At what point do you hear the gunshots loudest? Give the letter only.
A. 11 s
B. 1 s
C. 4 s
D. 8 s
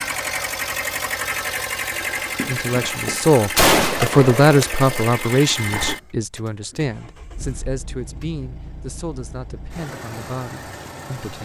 C.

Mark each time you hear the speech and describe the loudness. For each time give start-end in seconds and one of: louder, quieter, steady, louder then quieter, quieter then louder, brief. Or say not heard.
2.4-11.4 quieter.